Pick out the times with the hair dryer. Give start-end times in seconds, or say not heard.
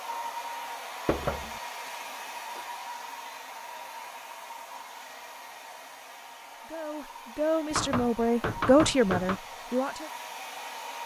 0.0-11.0.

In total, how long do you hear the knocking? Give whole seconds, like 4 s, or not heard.
2 s.